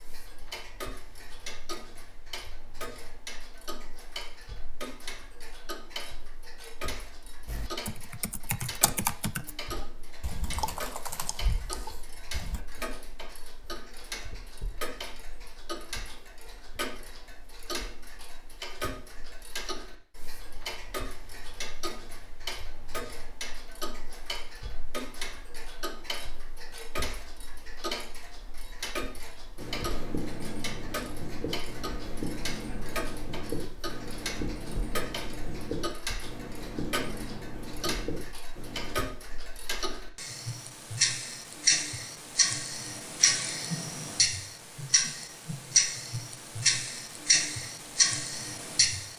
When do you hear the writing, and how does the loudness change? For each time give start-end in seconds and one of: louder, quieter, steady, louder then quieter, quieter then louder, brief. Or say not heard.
29.6-39.0 steady.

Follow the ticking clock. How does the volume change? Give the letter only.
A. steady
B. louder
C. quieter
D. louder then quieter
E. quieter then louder
B.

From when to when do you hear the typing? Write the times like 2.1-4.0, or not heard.
7.5-12.6.